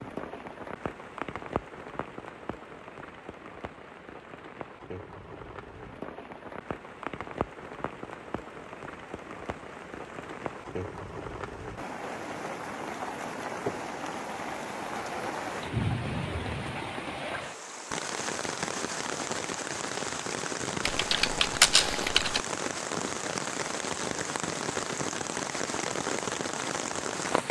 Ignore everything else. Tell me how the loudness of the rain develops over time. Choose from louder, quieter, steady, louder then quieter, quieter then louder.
louder.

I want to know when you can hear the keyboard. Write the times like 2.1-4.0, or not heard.
20.9-22.4.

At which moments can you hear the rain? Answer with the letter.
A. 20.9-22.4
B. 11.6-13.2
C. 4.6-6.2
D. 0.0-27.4
D.